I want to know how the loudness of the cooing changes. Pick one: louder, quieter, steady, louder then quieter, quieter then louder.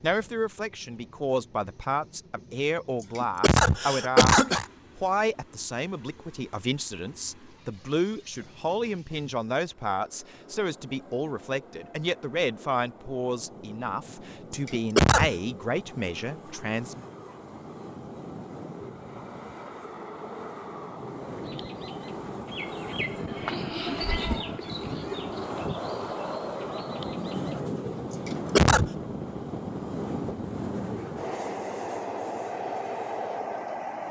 louder then quieter.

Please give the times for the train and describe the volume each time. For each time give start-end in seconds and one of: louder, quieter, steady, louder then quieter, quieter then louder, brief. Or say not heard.
0.0-34.0 louder.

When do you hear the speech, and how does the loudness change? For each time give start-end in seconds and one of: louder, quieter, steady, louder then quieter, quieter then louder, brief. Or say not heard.
0.0-17.1 steady.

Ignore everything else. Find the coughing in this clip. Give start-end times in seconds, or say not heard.
3.0-4.7, 14.7-15.3, 28.1-28.9.